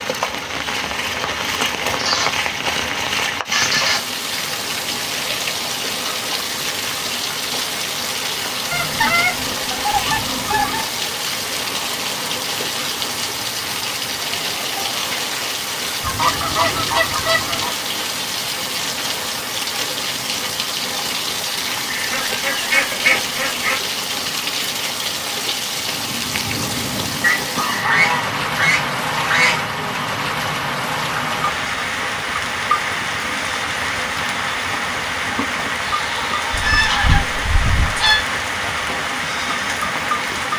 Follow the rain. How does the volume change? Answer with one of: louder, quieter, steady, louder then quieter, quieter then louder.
steady.